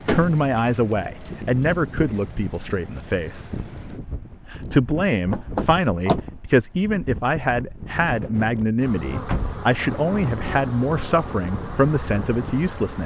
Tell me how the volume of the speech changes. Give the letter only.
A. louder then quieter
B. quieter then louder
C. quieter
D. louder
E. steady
E.